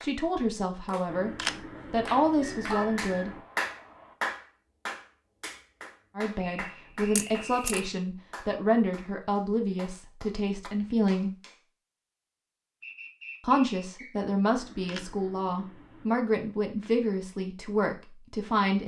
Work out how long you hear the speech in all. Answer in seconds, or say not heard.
13 s.